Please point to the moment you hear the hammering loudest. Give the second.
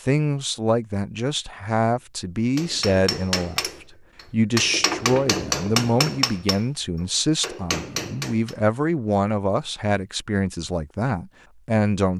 6 s.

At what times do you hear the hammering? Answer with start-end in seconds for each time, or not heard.
2.5-8.6.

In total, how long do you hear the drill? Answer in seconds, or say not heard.
not heard.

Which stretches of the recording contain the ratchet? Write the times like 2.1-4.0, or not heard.
not heard.